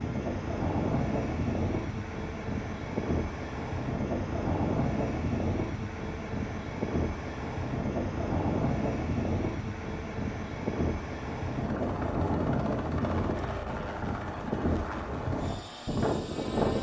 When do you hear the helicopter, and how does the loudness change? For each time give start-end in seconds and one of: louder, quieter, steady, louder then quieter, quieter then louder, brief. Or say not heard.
0.0-16.7 steady.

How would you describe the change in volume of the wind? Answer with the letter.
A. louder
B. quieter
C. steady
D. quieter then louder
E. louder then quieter
C.